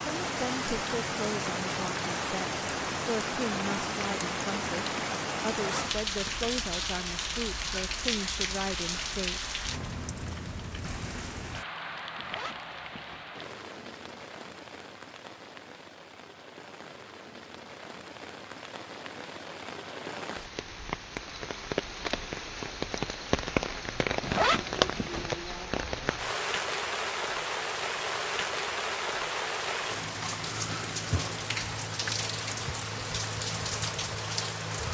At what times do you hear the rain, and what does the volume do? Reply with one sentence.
You can hear the rain from 0.0 to 34.8 s, getting quieter then louder.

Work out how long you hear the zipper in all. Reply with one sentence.
You can hear the zipper for 3 seconds altogether.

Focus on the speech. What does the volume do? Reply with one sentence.
The loudness of the speech stays about the same.